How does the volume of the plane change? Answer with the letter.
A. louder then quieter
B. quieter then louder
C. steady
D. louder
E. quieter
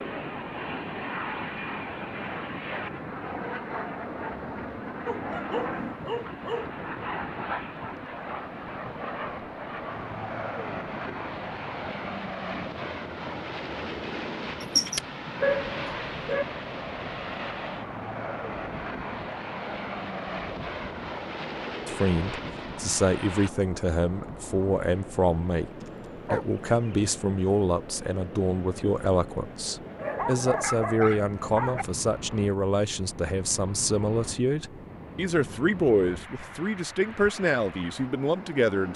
C.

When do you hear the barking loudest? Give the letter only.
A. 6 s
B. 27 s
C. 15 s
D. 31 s
C.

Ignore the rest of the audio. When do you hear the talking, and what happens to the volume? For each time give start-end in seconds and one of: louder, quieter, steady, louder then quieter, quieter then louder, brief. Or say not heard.
21.9-38.9 steady.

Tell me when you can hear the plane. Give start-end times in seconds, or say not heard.
0.0-23.5.